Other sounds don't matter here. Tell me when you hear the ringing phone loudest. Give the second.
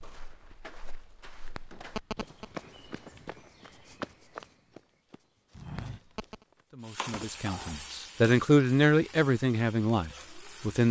2 s.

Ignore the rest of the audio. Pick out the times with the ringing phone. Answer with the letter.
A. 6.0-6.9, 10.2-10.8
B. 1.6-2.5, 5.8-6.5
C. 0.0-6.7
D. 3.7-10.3
B.